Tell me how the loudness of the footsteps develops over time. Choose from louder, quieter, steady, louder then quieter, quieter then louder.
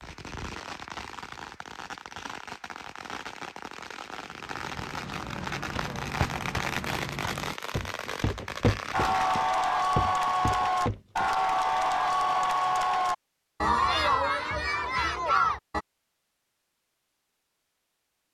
louder.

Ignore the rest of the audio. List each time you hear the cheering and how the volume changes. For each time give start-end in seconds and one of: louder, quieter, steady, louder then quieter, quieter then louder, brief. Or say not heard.
8.9-15.8 steady.